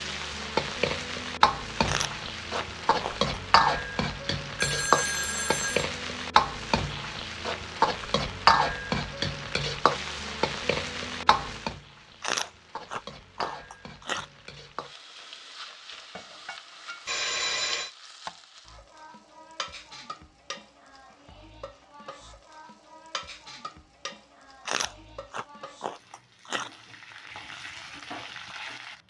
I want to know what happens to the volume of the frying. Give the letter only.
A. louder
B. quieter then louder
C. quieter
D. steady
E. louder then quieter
C.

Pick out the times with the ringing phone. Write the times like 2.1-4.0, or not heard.
4.6-5.9, 17.1-17.9.